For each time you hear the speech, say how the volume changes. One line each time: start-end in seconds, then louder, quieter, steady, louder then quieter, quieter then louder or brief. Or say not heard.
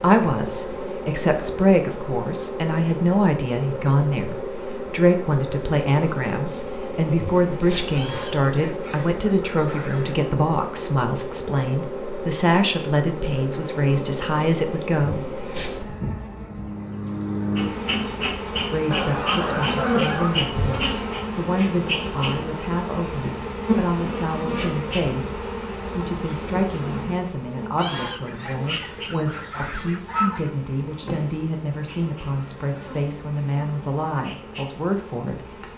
0.0-15.2 steady
18.0-35.6 steady.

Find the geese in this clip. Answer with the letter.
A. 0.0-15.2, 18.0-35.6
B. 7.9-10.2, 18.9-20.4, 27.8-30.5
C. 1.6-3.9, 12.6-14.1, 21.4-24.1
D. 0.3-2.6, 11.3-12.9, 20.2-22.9
B.